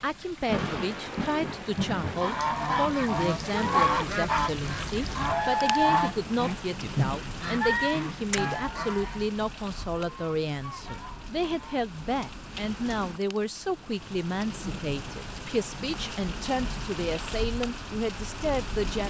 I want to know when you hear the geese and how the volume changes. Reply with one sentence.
You can hear the geese from 2.0 to 11.8 s, getting quieter.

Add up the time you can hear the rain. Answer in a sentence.
You can hear the rain for 19 seconds altogether.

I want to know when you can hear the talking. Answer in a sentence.
You can hear the talking from 0.0 to 19.0 s.